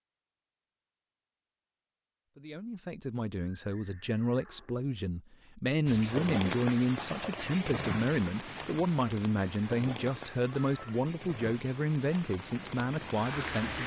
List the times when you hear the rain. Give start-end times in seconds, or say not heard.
5.8-13.8.